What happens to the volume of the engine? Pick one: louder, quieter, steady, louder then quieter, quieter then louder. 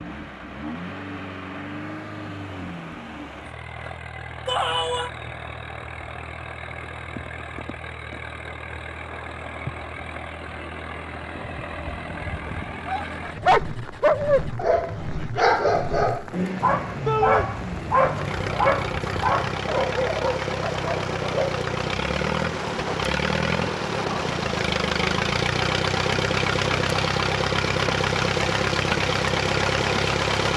louder.